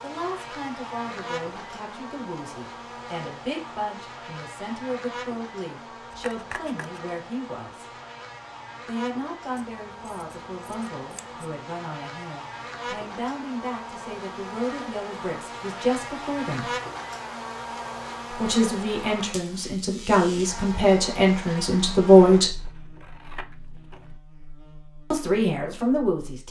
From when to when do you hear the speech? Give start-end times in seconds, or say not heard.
0.0-7.8, 8.8-16.7, 18.3-22.6, 25.1-26.4.